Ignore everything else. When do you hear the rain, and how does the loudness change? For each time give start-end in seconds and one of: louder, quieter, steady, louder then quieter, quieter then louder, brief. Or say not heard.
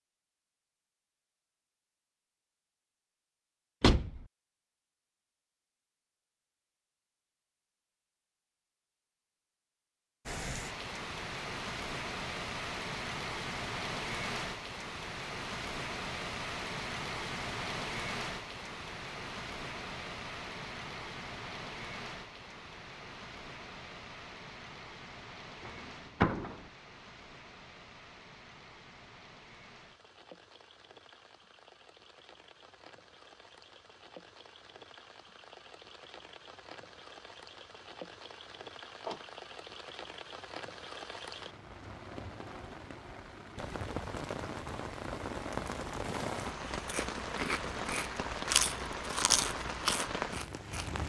10.2-51.0 quieter then louder.